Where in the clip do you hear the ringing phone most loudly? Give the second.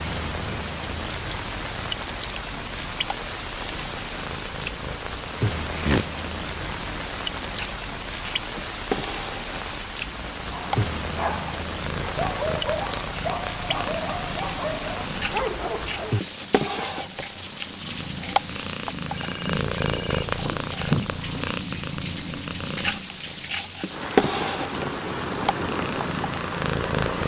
21 s.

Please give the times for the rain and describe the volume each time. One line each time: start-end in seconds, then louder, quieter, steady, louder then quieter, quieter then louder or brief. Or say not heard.
0.0-27.2 steady.